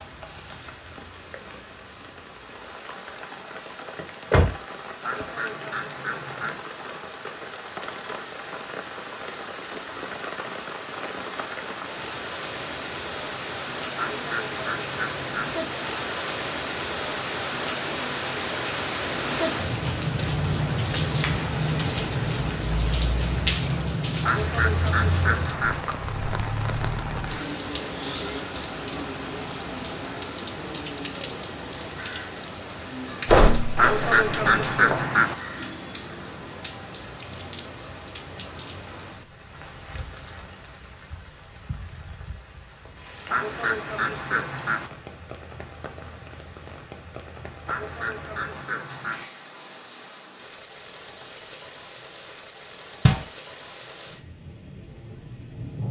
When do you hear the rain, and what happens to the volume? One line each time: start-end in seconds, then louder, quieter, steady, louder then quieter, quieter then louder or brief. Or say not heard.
0.0-55.8 louder then quieter.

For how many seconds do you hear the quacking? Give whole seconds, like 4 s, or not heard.
10 s.